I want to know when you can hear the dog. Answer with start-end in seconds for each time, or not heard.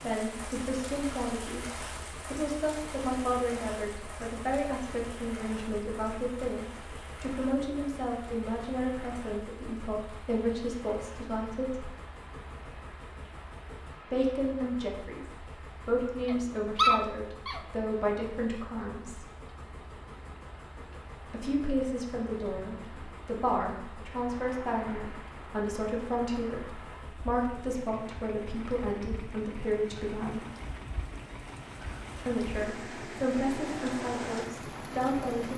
16.2-17.6.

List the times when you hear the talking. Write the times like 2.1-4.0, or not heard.
0.0-11.9, 14.1-19.2, 21.3-30.4, 32.2-35.5.